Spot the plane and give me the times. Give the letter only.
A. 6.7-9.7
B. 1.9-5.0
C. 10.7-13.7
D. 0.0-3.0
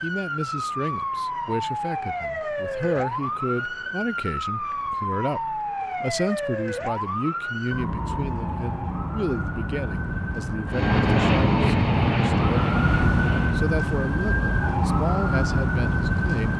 C.